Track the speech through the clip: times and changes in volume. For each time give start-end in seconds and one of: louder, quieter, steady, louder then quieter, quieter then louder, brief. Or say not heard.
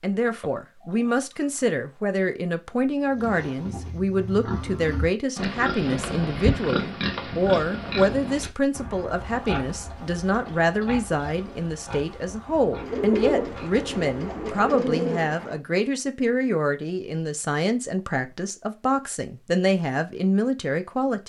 0.0-21.2 steady.